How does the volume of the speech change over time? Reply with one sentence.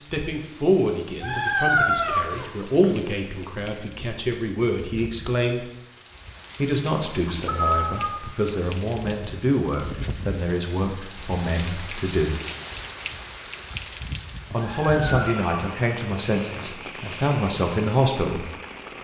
The loudness of the speech stays about the same.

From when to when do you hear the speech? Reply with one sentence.
The speech can be heard from 0.0 to 5.7 s, from 6.5 to 12.4 s and from 14.5 to 18.4 s.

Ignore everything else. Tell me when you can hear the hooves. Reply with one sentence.
You can't hear the hooves here.